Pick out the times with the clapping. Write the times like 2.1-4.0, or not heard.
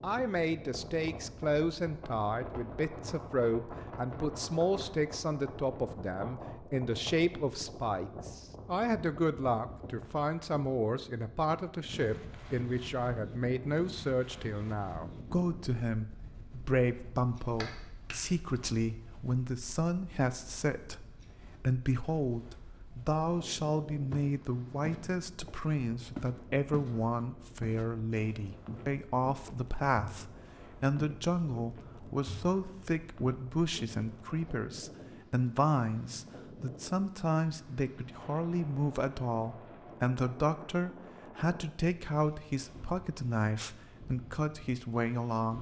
17.6-18.3.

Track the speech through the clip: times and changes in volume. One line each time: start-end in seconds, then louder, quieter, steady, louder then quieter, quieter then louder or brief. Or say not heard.
0.0-45.5 steady.